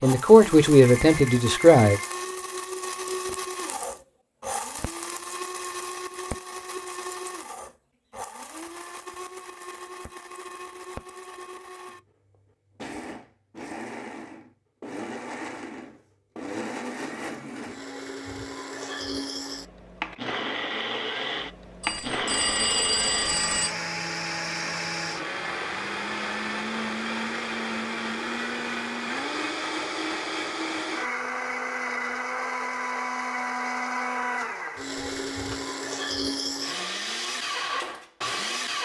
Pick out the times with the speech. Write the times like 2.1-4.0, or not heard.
0.0-2.0.